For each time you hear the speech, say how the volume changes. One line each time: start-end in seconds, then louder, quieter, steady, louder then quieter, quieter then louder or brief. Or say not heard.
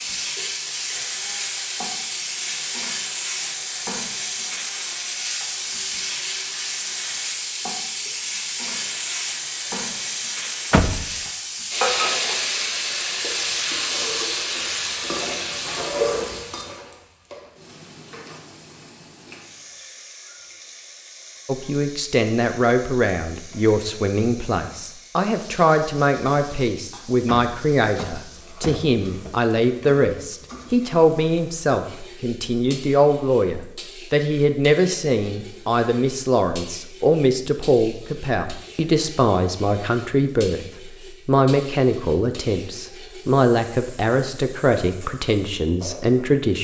21.4-46.5 steady.